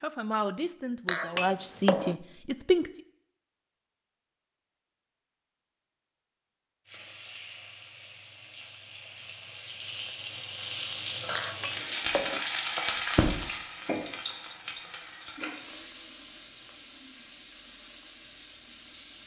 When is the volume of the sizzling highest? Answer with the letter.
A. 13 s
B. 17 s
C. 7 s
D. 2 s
A.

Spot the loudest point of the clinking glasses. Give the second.
2 s.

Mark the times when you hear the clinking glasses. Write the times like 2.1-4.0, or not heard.
1.1-2.1, 11.3-12.4.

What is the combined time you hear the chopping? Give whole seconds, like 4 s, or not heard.
not heard.